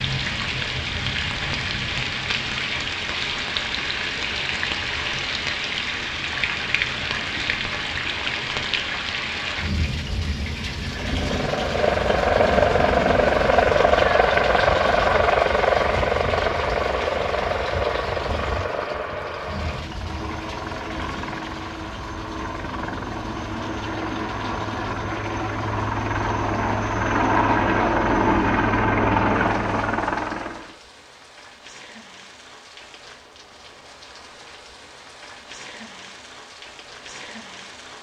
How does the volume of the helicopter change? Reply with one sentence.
The volume of the helicopter goes down, then up.